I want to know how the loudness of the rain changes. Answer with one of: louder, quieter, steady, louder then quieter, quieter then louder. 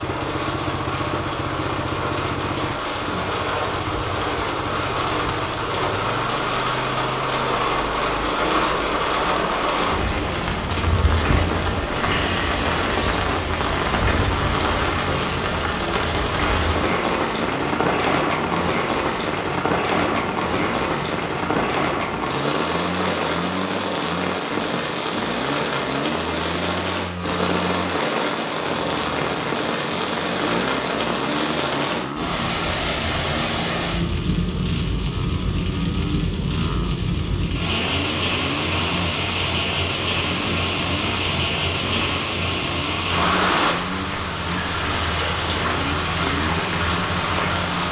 steady.